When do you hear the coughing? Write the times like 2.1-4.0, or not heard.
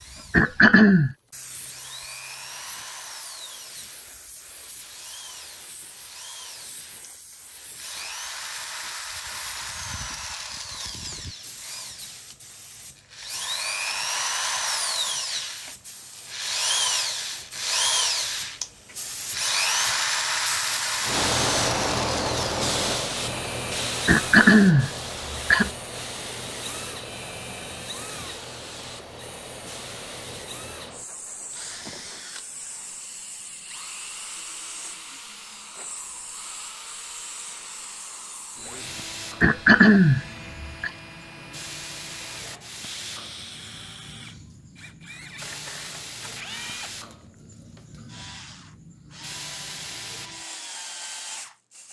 0.3-1.1, 24.1-25.7, 39.4-40.9.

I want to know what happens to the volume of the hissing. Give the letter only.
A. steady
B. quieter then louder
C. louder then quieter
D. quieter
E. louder
C.